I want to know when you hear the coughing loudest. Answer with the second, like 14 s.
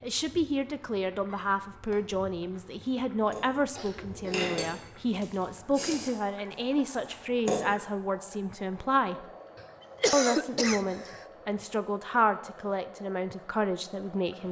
10 s.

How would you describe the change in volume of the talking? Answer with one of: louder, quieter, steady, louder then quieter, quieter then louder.
steady.